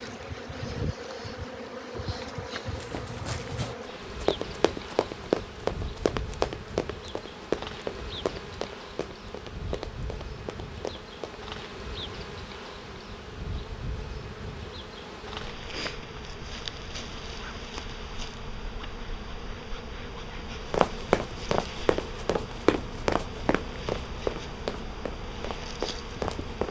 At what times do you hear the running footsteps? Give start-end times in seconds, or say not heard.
2.8-11.4, 20.7-26.6.